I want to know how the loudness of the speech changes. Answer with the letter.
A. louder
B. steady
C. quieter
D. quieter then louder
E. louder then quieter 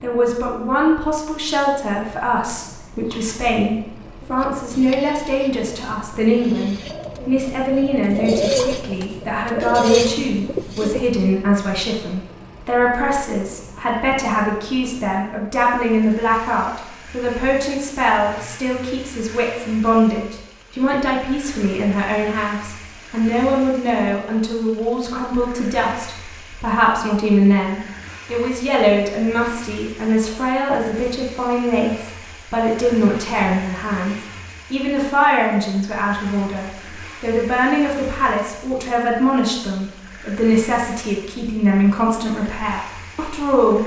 B.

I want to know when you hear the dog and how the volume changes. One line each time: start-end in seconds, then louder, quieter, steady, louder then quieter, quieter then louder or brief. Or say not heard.
not heard.